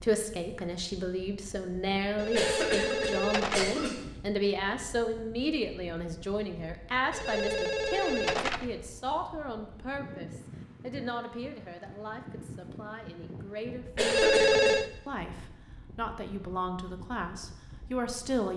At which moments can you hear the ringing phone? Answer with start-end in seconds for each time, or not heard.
2.1-3.7, 7.1-8.7, 14.0-14.9.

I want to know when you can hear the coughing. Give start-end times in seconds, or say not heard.
2.4-4.2, 13.9-14.8.